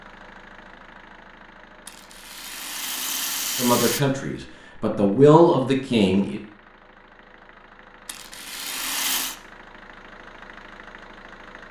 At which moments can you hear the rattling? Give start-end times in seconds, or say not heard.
1.9-4.0, 8.1-9.3.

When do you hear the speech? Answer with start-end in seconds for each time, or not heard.
3.5-6.4.